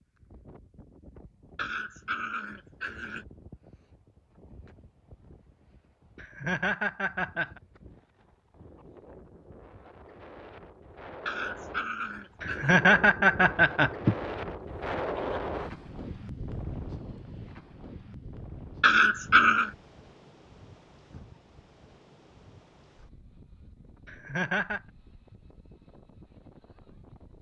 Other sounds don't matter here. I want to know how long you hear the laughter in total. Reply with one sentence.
The laughter can be heard for 4 seconds in total.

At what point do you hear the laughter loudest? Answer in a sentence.
The loudest moment of the laughter is at 13 seconds.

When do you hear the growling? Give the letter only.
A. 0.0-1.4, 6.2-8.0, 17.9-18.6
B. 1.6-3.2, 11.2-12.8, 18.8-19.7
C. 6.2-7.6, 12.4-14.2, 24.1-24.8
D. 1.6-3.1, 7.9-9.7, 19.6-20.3
B.